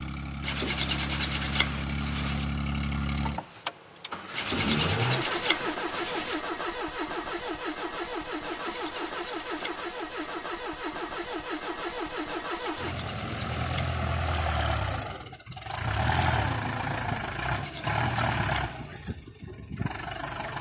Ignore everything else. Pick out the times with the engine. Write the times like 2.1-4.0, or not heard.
0.0-20.5.